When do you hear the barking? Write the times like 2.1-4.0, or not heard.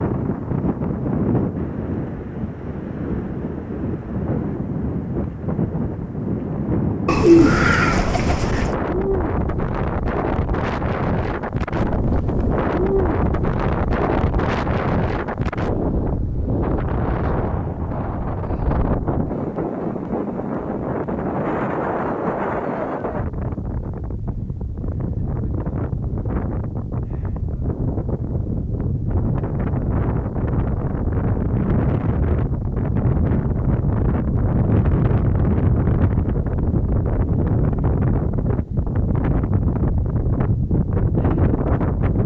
not heard.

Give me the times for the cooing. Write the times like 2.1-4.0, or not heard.
7.0-8.8.